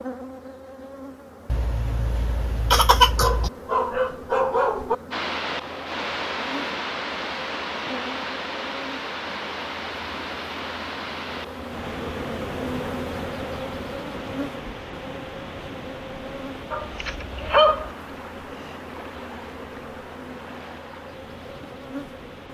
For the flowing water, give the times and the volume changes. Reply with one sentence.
You can hear the flowing water from 5.1 to 22.5 s, getting quieter.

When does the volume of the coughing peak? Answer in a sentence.
The volume of the coughing peaks at 3 seconds.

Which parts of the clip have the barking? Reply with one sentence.
You can hear the barking from 3.0 to 5.0 s and from 16.7 to 17.9 s.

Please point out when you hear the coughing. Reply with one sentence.
The coughing can be heard from 1.4 to 3.5 s.